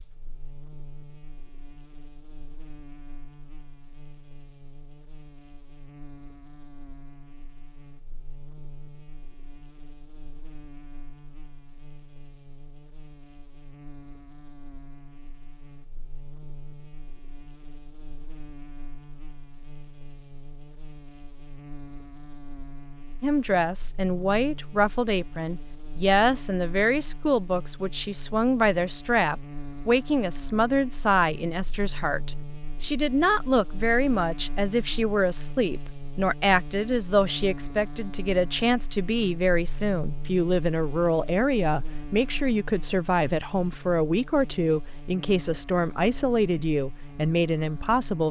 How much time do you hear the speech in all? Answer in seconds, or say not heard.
25 s.